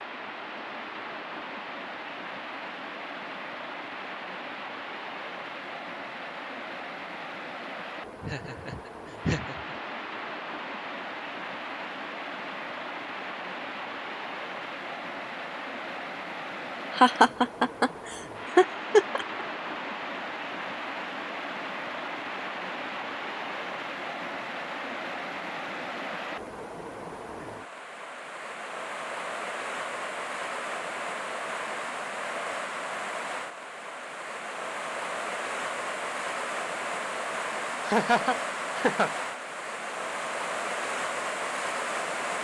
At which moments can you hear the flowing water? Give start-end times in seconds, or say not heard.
0.0-42.4.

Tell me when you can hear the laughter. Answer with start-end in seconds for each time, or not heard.
8.2-9.8, 16.9-17.9, 18.6-19.2, 37.9-39.1.